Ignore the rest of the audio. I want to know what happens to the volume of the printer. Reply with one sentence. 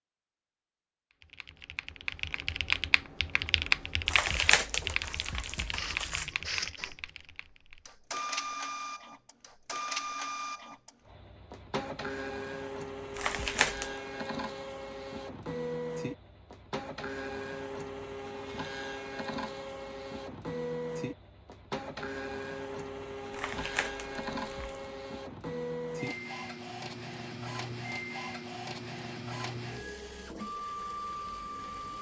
The volume of the printer stays about the same.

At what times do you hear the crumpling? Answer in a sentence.
You can hear the crumpling from 4.0 to 6.3 s, from 13.2 to 13.9 s and from 23.3 to 24.9 s.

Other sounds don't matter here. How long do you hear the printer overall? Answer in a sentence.
You can hear the printer for 26 seconds altogether.